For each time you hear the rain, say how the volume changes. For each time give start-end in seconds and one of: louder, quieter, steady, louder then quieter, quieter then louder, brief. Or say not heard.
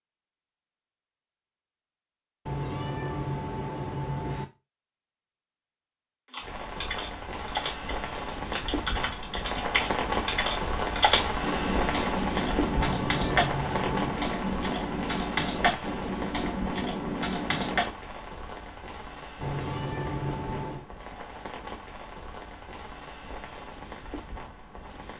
6.3-25.1 quieter.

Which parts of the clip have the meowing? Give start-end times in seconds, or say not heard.
2.5-4.5, 12.7-14.2, 19.4-20.9.